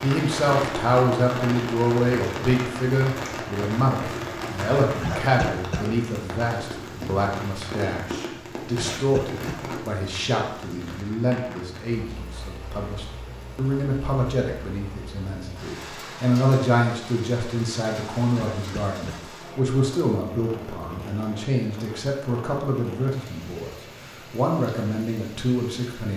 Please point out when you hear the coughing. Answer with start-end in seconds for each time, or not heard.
5.0-5.9, 8.8-9.7, 18.4-19.2.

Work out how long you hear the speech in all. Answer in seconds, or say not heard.
26 s.